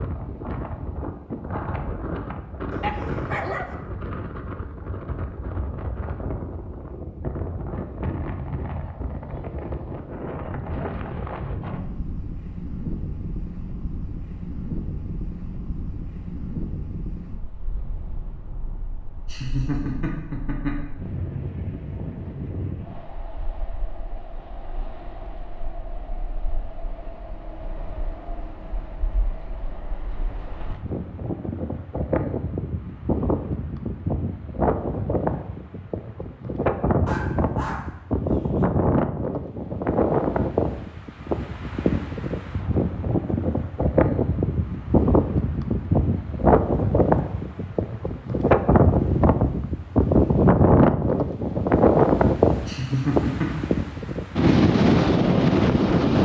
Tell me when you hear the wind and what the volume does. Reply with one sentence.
The wind can be heard from 0.0 to 56.2 s, getting louder.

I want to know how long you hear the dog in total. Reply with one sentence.
The dog can be heard for 3 seconds in total.